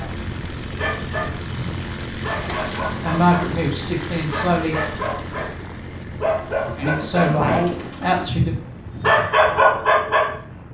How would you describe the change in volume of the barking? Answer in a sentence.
The volume of the barking goes up.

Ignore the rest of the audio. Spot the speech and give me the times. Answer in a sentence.
The speech can be heard from 3.0 to 4.8 s and from 6.8 to 8.6 s.